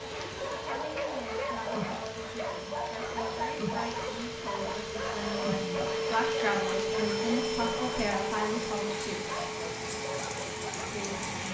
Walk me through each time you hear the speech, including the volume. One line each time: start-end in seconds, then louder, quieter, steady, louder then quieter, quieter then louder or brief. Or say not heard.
0.0-9.3 louder
10.8-11.4 brief.